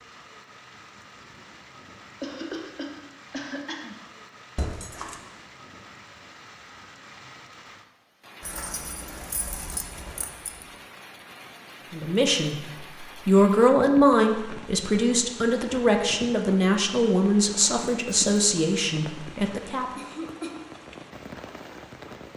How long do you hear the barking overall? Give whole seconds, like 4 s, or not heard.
not heard.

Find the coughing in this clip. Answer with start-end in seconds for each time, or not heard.
2.2-4.0, 19.9-20.7.